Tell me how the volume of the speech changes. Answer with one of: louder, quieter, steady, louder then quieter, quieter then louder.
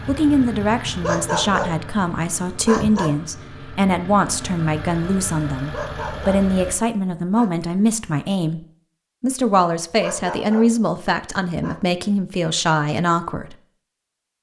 steady.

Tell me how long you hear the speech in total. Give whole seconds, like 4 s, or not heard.
13 s.